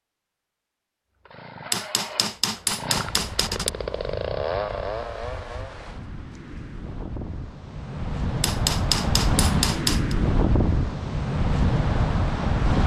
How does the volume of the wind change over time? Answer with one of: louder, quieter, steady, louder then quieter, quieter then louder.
louder.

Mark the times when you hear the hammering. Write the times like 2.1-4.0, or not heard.
1.7-3.7, 8.4-10.2.